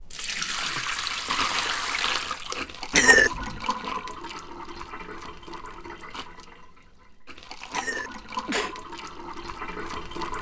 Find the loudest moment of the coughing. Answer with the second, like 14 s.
3 s.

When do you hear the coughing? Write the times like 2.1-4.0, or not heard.
2.9-3.6, 7.7-8.8.